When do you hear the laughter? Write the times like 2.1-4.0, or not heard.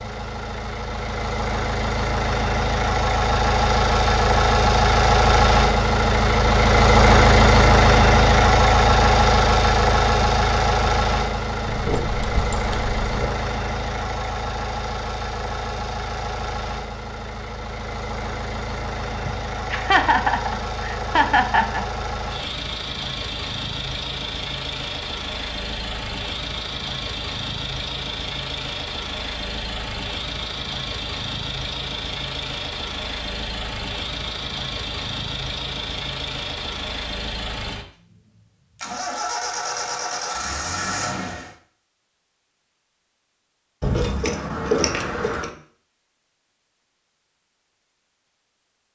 19.2-21.9.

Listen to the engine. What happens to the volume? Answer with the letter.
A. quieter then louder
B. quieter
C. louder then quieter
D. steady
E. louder
B.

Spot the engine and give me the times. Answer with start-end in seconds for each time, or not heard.
0.0-41.5.